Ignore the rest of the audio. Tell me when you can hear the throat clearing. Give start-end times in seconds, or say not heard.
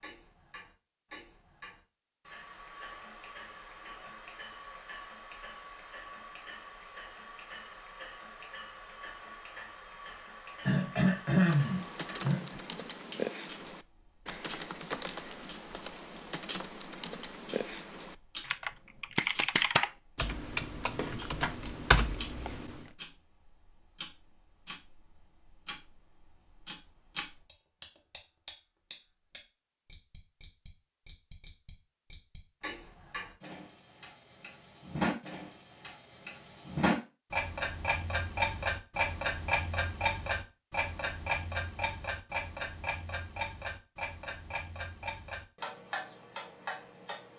10.7-12.6.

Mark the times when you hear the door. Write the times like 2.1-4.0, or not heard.
not heard.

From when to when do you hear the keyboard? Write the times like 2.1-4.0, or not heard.
11.4-22.9.